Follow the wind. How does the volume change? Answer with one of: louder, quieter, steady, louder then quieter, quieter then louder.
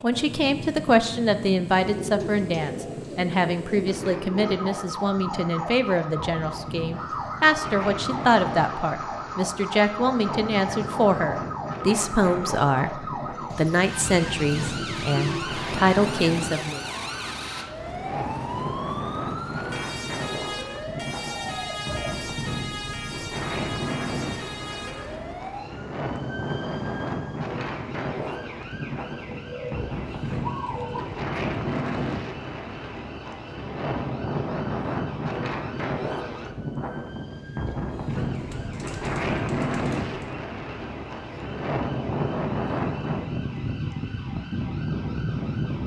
louder.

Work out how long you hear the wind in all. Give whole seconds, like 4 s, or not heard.
46 s.